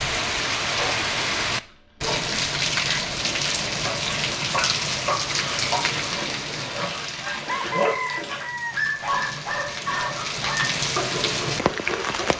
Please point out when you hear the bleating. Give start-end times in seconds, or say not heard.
not heard.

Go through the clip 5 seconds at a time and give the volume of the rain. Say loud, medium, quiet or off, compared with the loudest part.
loud, medium, loud.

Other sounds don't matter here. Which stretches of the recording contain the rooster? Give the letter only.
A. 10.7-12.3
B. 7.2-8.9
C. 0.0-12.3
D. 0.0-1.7
B.